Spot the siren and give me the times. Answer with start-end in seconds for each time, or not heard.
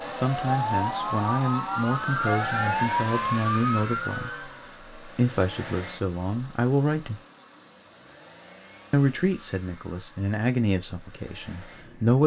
0.0-4.5.